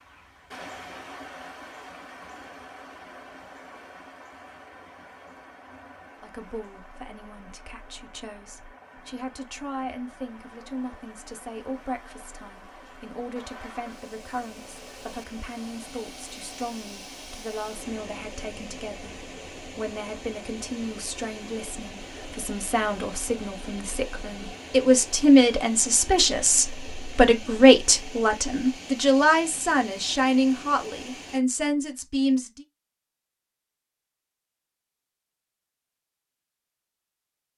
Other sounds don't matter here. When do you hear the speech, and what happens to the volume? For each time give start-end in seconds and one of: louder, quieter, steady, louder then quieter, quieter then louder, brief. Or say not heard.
6.2-32.6 louder.